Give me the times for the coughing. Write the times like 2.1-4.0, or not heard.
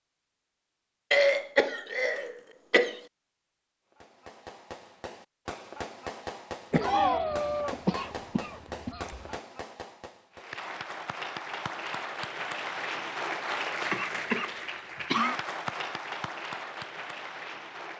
1.1-3.0, 6.7-9.3, 13.9-15.4.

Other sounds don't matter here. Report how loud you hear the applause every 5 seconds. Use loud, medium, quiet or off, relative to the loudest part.
off, off, loud, loud.